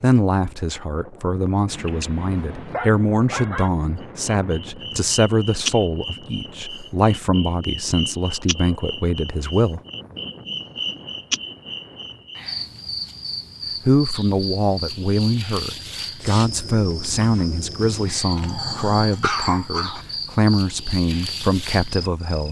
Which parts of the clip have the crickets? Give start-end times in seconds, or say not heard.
4.0-22.4.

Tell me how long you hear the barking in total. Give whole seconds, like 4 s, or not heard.
4 s.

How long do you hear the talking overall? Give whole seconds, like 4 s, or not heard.
18 s.